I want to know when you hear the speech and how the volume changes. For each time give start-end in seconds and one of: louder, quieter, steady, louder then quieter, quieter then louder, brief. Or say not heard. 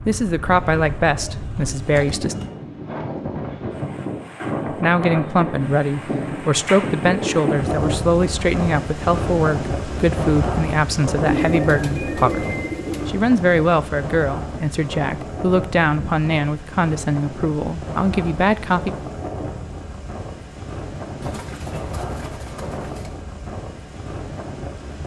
0.1-2.4 brief
4.7-18.9 steady.